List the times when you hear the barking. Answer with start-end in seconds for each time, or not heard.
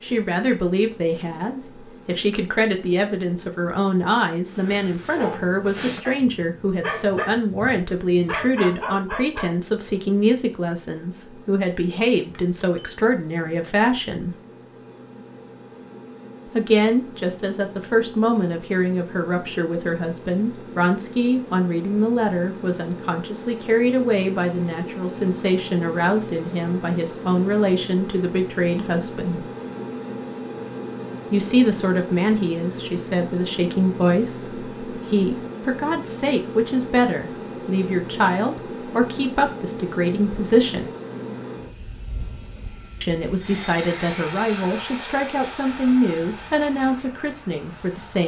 4.5-9.9.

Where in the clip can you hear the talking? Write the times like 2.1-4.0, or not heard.
0.0-14.3, 16.4-29.4, 31.3-41.0, 43.0-48.2.